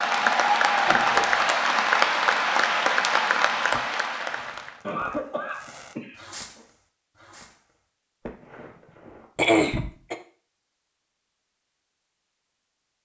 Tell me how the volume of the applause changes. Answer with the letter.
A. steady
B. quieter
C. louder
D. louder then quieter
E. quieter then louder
B.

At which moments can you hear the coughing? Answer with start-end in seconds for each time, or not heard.
0.8-1.4, 4.8-6.7, 9.3-10.2.